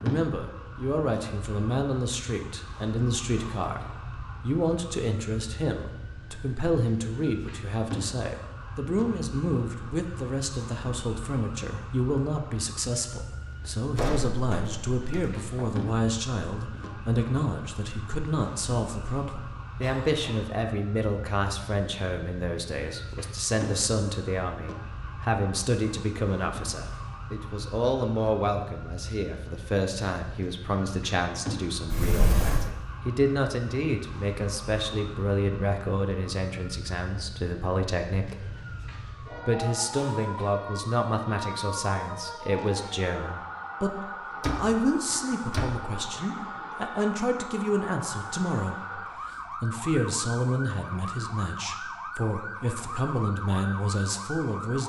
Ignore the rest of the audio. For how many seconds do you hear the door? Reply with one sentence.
You can hear the door for 4 seconds altogether.